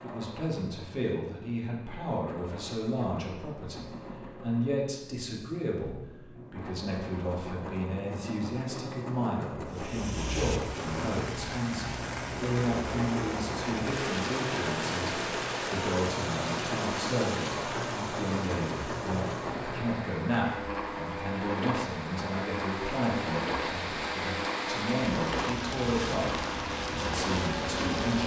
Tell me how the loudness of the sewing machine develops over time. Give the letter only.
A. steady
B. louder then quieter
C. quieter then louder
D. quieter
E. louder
E.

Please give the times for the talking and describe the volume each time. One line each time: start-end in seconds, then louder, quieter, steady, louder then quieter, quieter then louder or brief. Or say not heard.
0.0-28.2 steady.